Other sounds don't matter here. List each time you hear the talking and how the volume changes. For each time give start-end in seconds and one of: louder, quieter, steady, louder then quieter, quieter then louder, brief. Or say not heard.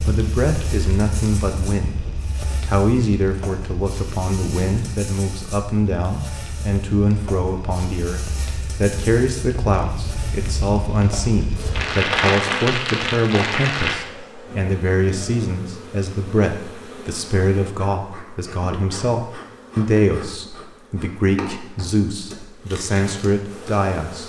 0.1-24.2 steady.